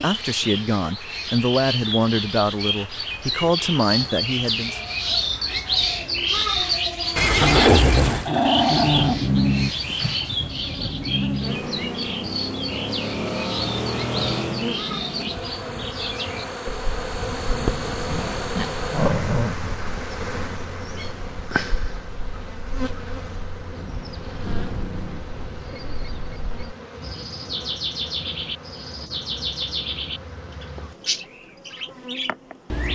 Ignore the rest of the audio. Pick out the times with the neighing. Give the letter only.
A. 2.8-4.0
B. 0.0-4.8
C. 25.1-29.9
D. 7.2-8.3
D.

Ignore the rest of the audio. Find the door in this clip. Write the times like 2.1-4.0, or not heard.
not heard.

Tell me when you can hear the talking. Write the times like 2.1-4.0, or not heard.
0.0-4.8.